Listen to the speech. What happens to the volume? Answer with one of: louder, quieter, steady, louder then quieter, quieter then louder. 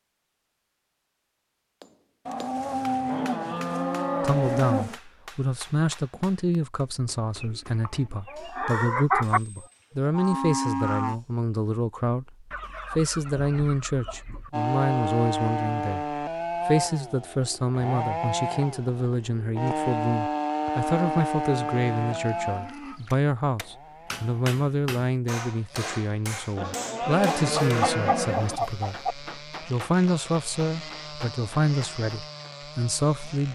steady.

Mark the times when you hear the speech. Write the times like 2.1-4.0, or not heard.
4.2-33.5.